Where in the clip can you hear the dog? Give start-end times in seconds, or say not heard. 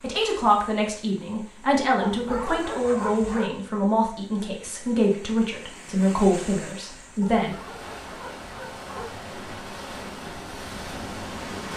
2.0-3.5, 7.3-9.2.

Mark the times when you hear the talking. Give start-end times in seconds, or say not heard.
0.0-7.5.